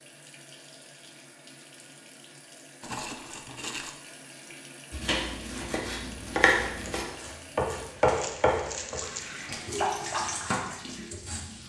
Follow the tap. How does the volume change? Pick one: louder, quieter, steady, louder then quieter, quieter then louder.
louder.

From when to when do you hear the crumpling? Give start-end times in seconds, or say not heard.
2.8-4.0, 8.2-9.2.